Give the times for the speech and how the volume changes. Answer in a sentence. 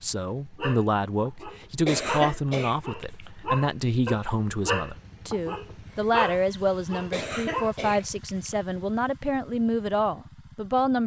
The speech can be heard from 0.0 to 11.0 s, at a steady volume.